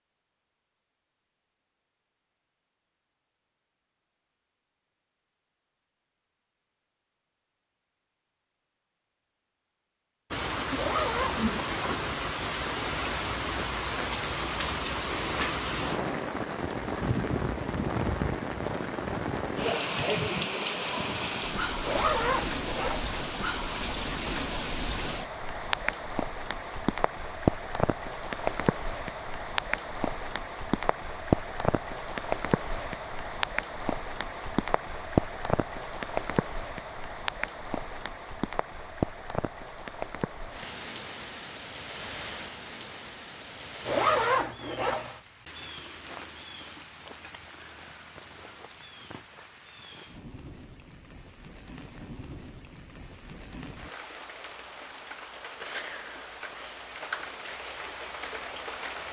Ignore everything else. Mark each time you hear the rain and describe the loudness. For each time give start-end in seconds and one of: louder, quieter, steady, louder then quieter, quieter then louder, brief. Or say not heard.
10.3-59.0 quieter.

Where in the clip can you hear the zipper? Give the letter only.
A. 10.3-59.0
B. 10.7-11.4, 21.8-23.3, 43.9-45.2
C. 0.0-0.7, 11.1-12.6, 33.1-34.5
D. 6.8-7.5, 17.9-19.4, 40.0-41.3
B.